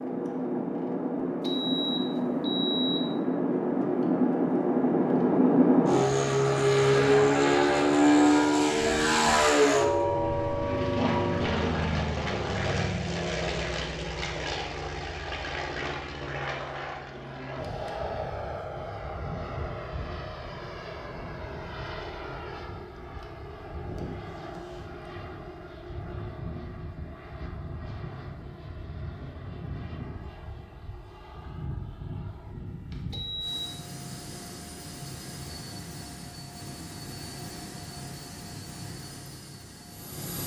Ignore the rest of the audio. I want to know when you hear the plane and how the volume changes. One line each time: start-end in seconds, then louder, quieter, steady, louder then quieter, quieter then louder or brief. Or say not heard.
0.0-40.4 quieter.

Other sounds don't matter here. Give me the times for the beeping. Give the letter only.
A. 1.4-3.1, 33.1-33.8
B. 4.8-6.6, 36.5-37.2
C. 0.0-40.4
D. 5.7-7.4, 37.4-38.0
A.